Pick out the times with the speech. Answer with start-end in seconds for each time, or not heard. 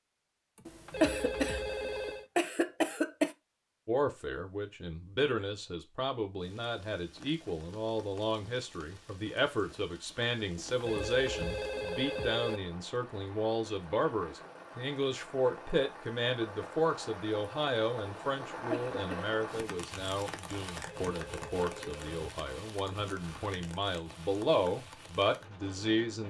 3.9-26.2.